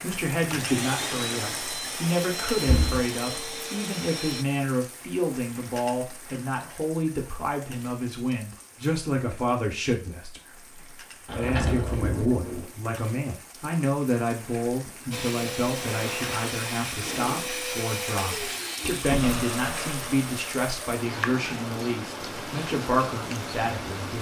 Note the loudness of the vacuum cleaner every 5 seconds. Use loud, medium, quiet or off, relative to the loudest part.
loud, off, off, loud, medium.